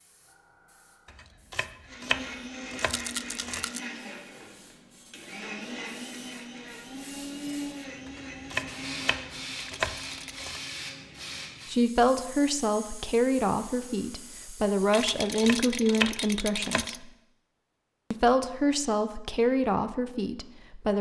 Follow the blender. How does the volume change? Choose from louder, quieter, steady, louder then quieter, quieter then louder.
quieter.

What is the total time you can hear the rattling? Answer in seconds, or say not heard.
4 s.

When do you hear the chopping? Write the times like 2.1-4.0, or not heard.
1.1-3.6, 8.1-10.6, 14.9-16.9.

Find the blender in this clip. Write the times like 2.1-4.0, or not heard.
1.9-11.4.